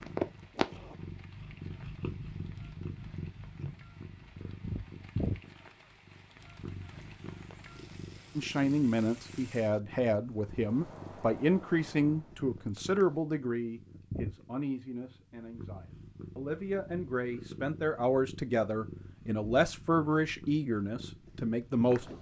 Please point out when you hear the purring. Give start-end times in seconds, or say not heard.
0.0-22.1.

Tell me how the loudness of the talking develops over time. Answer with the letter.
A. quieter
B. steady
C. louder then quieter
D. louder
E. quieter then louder
E.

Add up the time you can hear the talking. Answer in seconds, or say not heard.
14 s.